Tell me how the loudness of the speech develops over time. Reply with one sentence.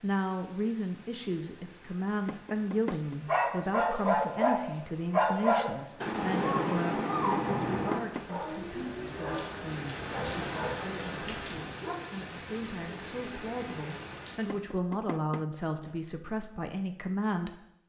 The loudness of the speech goes down, then up.